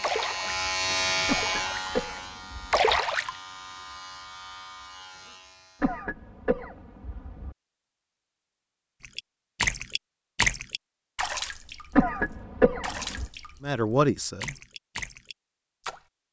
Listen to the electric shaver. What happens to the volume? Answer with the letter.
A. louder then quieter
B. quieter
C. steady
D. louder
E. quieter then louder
B.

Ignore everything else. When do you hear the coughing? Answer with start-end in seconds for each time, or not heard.
1.2-3.0, 5.8-7.5, 11.9-13.3.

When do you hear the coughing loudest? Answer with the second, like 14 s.
12 s.